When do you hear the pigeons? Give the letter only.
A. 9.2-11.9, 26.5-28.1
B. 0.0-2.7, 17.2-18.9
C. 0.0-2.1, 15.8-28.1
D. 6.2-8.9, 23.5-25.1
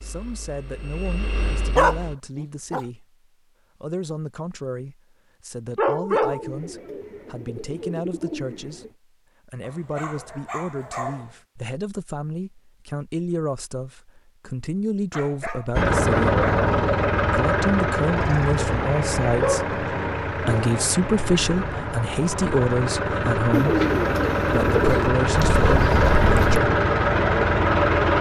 D.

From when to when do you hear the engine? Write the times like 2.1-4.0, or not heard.
0.0-2.1, 15.8-28.1.